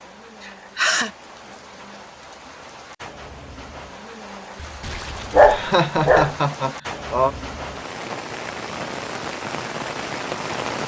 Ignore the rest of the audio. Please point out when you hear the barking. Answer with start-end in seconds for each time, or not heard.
4.6-6.3.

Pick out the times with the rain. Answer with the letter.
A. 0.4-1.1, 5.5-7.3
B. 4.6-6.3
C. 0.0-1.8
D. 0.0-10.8
D.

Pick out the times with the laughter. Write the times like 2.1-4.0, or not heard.
0.4-1.1, 5.5-7.3.